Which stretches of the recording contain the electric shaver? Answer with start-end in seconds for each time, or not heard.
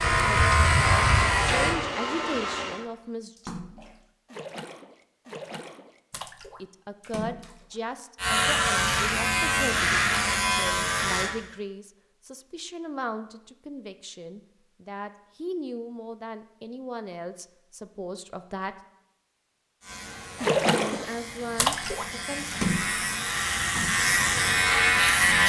0.0-1.8, 8.2-11.3, 19.8-25.4.